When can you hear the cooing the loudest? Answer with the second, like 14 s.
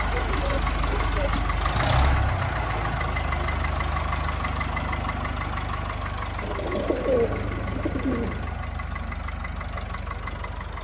7 s.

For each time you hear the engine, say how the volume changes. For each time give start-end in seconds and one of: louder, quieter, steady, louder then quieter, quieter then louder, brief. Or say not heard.
0.0-10.7 quieter.